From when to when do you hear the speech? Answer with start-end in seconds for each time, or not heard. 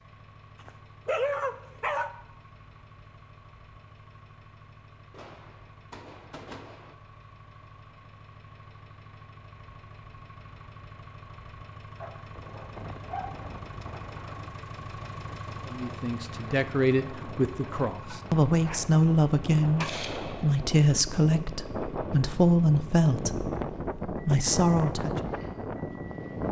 15.7-25.1.